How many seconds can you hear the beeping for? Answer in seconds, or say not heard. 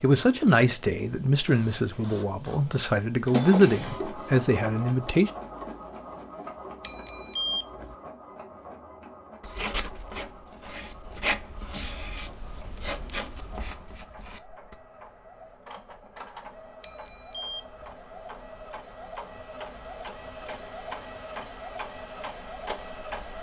2 s.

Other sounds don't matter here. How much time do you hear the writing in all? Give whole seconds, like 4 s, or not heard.
5 s.